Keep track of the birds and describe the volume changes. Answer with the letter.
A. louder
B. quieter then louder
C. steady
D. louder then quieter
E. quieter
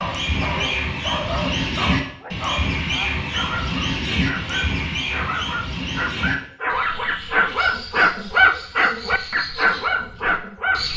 E.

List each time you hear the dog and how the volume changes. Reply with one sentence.
You can hear the dog from 0.0 to 10.9 s, getting louder.